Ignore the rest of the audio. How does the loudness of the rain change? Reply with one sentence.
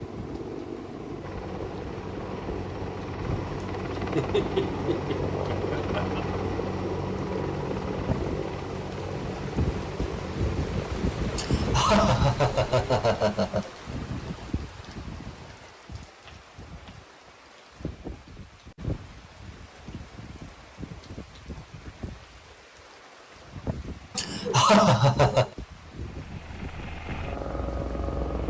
The volume of the rain goes up, then down.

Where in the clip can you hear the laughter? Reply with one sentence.
The laughter can be heard from 4.0 to 6.2 s, from 11.3 to 13.7 s and from 24.1 to 25.5 s.